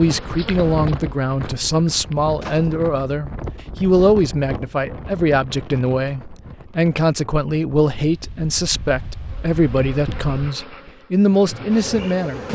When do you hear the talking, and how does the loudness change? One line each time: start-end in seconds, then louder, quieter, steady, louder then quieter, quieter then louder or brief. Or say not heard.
0.0-12.4 steady.